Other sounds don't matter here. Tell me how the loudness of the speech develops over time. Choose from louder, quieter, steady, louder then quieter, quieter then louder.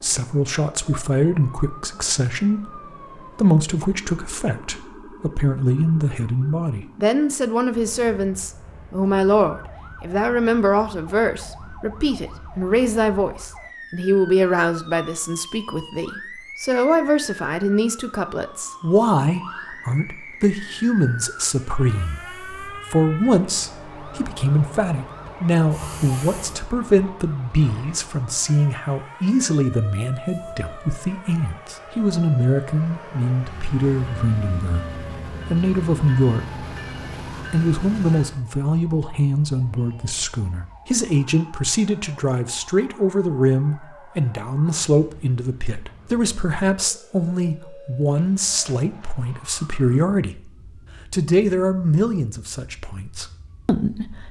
steady.